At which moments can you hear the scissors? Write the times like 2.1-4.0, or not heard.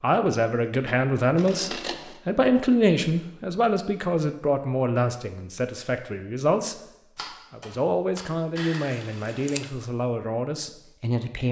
1.4-2.2, 8.6-9.7.